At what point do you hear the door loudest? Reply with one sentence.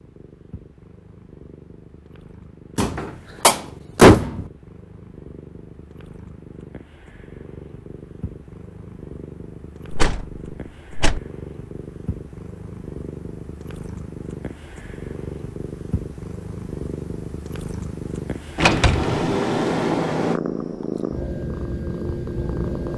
The loudest moment of the door is at 4 seconds.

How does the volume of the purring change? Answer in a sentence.
The volume of the purring goes up.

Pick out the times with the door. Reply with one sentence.
You can hear the door from 2.8 to 4.5 s, from 9.9 to 11.2 s and from 18.6 to 20.4 s.